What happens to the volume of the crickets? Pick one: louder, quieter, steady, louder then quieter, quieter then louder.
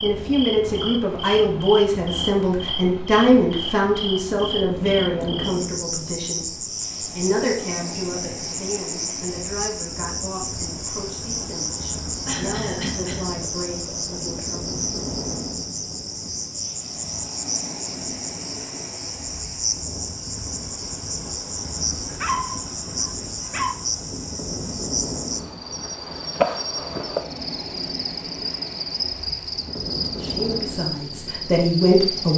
steady.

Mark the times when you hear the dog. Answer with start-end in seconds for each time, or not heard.
22.1-23.8.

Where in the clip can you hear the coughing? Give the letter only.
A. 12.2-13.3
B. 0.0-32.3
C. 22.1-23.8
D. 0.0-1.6
A.